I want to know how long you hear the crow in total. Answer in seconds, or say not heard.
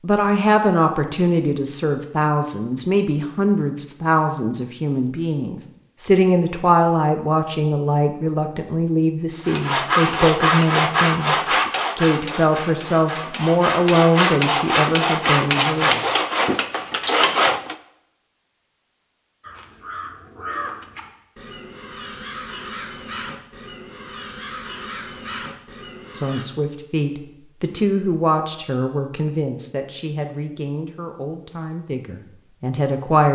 7 s.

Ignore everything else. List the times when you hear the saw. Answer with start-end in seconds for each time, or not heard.
9.4-17.8.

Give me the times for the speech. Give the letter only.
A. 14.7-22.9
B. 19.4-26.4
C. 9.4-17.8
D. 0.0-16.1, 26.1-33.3
D.